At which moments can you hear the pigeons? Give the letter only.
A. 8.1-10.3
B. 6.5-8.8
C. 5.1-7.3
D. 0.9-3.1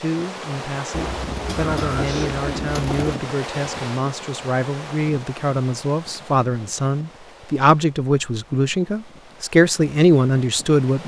D.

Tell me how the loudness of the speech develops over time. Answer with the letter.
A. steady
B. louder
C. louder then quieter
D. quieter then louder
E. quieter
B.